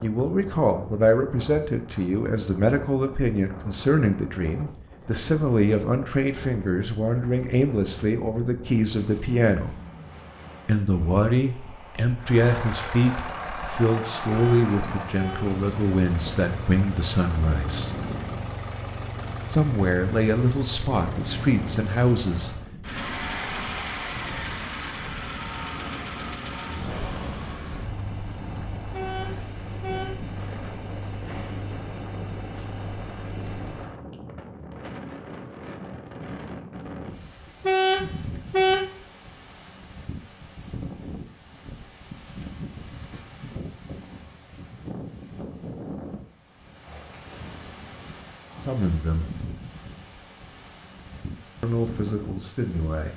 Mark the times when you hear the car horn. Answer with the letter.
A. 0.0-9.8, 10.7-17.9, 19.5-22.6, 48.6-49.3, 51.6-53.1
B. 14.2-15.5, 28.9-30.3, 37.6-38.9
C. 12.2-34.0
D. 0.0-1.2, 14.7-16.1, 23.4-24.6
B.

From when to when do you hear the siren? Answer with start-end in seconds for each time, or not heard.
not heard.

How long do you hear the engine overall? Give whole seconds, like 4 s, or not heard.
22 s.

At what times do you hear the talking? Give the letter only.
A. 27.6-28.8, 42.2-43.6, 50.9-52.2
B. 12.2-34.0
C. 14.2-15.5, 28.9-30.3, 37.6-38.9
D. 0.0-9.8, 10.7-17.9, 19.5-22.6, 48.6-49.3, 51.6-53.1
D.